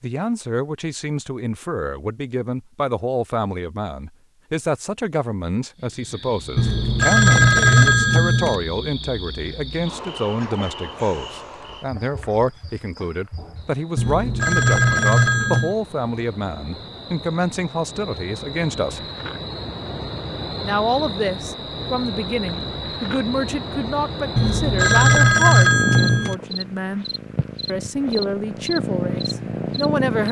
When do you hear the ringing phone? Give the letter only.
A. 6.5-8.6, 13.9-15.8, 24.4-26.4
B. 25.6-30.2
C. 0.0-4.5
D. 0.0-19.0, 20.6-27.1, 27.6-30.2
A.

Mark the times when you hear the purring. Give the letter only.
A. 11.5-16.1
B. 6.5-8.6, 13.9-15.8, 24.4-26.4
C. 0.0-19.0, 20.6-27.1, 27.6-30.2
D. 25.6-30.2
D.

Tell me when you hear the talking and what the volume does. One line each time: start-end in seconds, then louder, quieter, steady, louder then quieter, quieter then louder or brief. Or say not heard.
0.0-19.0 steady
20.6-27.1 steady
27.6-30.2 brief.